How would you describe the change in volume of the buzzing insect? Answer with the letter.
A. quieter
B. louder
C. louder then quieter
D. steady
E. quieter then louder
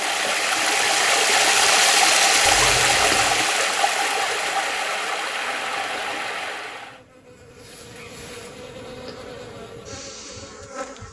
B.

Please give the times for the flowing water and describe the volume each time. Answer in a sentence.
The flowing water can be heard from 0.0 to 7.0 s, getting quieter.